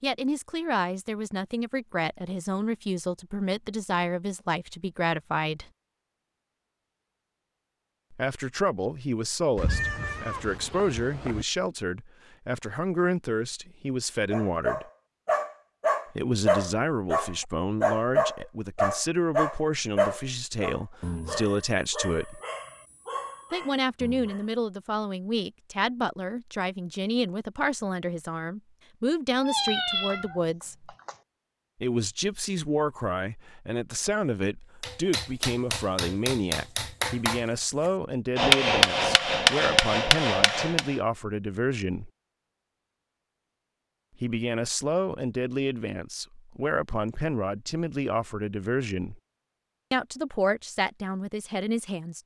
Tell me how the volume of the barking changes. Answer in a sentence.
The loudness of the barking goes down.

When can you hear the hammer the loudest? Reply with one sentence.
The volume of the hammer peaks at 39 seconds.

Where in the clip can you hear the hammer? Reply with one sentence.
You can hear the hammer from 34.8 to 41.0 s.